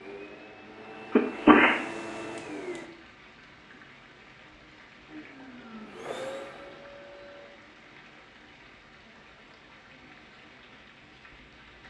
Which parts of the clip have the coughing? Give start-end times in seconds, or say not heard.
1.1-1.9.